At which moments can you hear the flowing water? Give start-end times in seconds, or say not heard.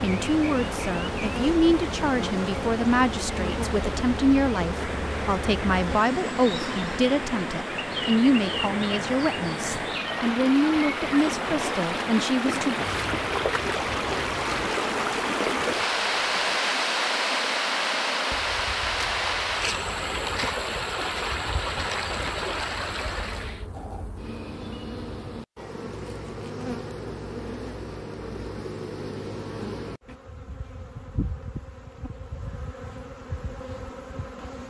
0.0-23.6.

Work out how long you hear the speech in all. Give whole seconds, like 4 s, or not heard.
13 s.